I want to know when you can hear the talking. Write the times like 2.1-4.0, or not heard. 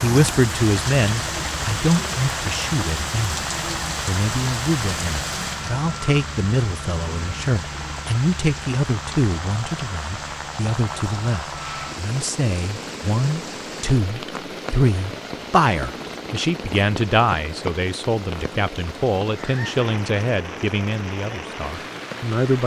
0.0-3.4, 4.0-22.6.